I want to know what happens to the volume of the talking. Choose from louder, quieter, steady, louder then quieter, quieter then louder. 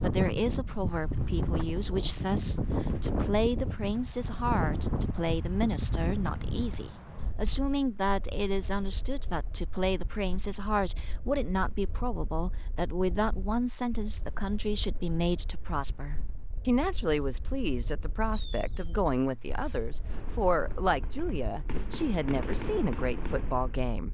steady.